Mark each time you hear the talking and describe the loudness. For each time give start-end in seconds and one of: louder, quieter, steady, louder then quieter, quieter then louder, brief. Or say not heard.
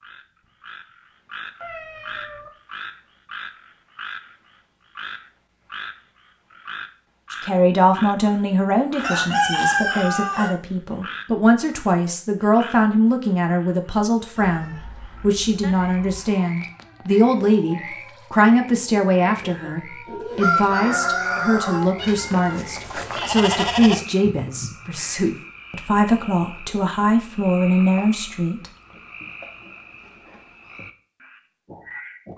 7.3-28.7 steady.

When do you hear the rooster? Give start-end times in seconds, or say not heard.
8.9-10.5, 19.2-22.2.